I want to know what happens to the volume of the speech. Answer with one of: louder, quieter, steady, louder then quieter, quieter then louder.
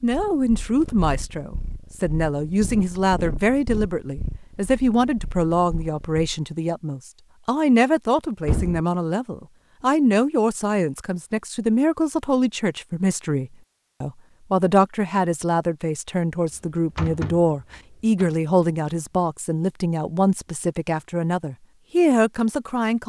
steady.